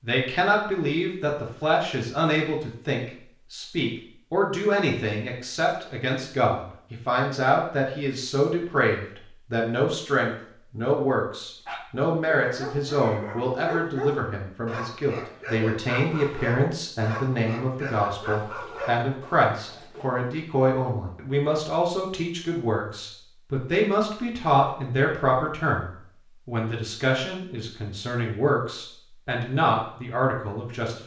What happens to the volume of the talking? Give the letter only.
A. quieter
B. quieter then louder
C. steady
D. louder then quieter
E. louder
C.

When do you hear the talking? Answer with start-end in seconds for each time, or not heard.
0.0-31.0.